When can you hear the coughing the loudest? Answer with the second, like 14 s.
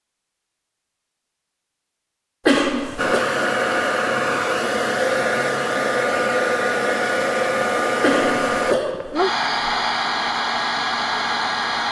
3 s.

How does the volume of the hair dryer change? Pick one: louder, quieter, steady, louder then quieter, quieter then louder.
steady.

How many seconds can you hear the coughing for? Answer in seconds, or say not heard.
2 s.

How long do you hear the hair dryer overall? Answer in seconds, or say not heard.
9 s.